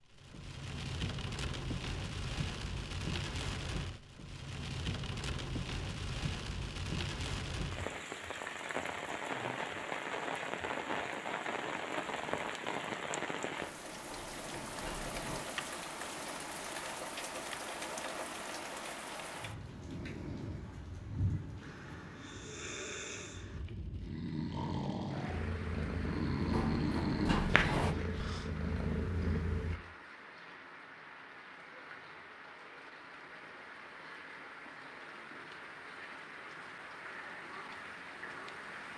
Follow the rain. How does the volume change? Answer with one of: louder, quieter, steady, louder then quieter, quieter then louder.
quieter.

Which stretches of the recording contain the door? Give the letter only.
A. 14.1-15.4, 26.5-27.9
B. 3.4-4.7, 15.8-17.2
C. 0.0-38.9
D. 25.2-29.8
A.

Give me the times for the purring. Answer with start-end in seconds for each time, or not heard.
25.2-29.8.